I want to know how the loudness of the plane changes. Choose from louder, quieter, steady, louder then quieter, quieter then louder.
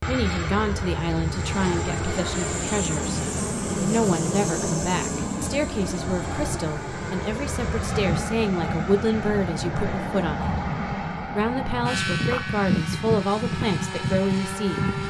steady.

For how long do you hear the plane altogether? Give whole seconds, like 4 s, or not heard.
15 s.